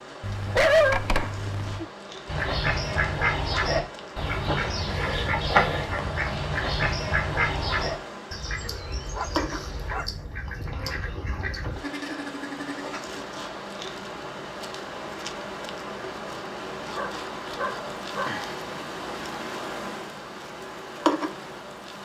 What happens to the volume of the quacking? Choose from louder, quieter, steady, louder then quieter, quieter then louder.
quieter.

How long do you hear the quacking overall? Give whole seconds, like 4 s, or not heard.
11 s.